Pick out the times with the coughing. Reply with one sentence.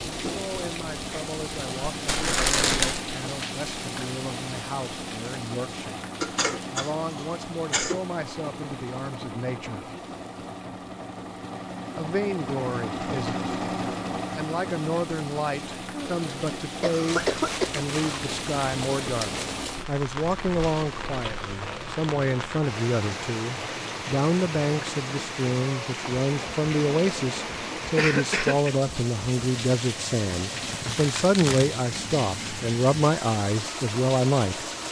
You can hear the coughing from 6.2 to 8.0 s, from 15.9 to 17.8 s and from 27.9 to 28.8 s.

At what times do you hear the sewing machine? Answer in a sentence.
The sewing machine can be heard from 0.0 to 34.8 s.